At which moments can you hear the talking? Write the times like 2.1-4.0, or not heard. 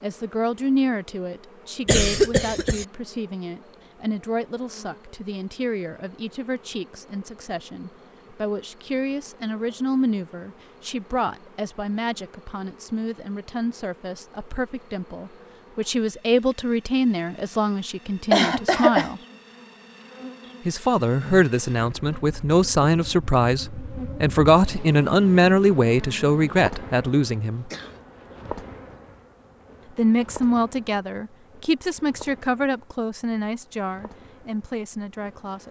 0.0-19.2, 20.6-27.7, 29.9-35.6.